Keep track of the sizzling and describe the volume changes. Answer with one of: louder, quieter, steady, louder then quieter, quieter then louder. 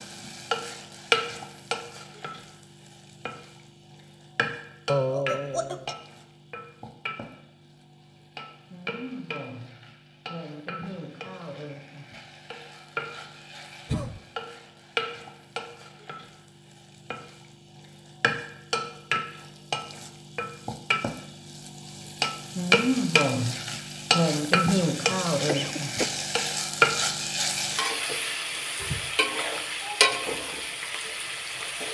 quieter then louder.